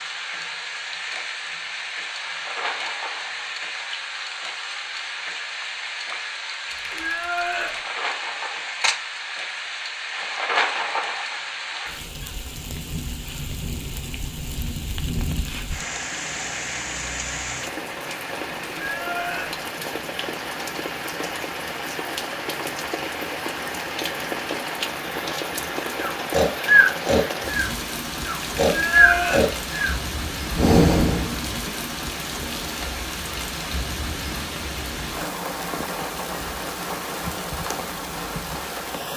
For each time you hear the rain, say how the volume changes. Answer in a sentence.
You can hear the rain from 0.0 to 39.1 s, at a steady volume.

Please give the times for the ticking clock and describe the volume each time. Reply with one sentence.
You can't hear the ticking clock here.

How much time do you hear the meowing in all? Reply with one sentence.
You can hear the meowing for 3 seconds altogether.